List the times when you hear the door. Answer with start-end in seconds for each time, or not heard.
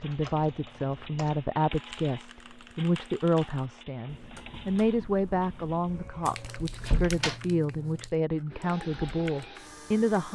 5.9-7.4.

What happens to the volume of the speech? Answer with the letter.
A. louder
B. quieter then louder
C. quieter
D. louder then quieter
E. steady
E.